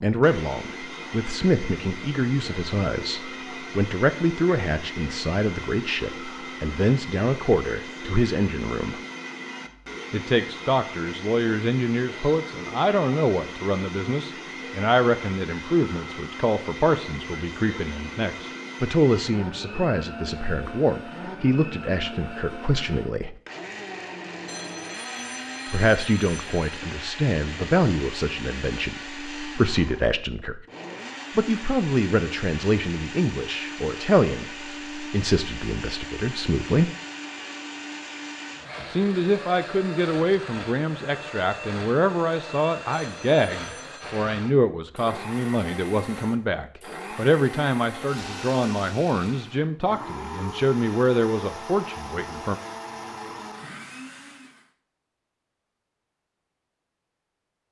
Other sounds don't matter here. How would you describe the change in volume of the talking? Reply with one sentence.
The loudness of the talking stays about the same.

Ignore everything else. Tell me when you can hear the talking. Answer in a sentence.
The talking can be heard from 0.0 to 9.0 s, from 10.1 to 23.4 s, from 25.7 to 30.6 s, from 31.4 to 36.9 s and from 38.9 to 52.5 s.